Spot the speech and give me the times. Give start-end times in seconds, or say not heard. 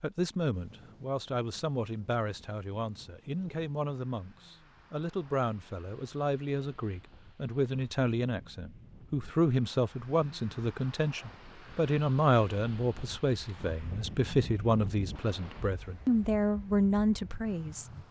0.0-17.9.